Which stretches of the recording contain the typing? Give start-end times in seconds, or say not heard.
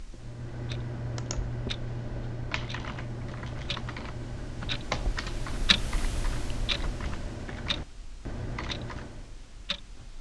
0.1-9.3.